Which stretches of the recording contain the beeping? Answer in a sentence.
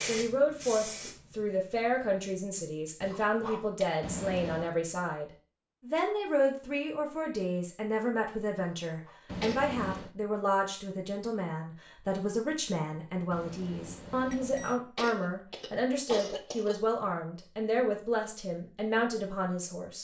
You can hear the beeping from 4.0 to 4.7 s, from 9.2 to 10.2 s and from 13.3 to 14.8 s.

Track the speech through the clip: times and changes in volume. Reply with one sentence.
You can hear the speech from 0.0 to 19.9 s, at a steady volume.